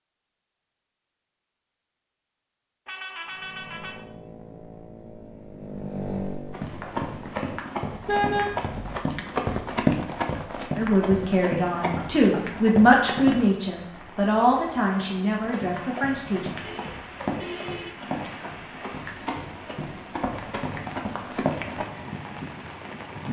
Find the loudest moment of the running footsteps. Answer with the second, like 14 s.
10 s.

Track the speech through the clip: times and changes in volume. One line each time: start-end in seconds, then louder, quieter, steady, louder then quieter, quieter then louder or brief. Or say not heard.
10.8-16.5 louder then quieter.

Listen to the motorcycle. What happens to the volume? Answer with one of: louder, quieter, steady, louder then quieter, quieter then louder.
louder then quieter.